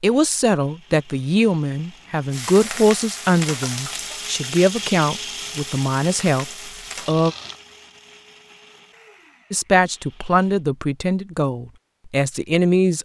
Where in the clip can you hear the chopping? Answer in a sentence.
The chopping can't be heard in this clip.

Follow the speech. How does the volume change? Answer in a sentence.
The volume of the speech stays about the same.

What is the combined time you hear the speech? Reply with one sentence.
You can hear the speech for 11 seconds altogether.